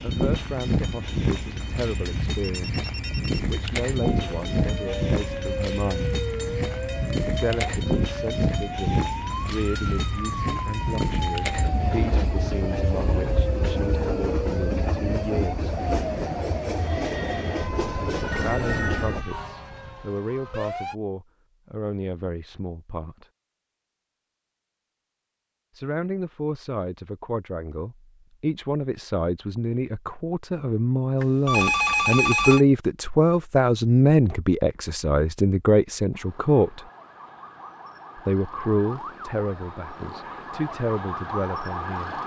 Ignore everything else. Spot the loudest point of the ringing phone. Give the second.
32 s.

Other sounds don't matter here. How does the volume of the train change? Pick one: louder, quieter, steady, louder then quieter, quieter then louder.
steady.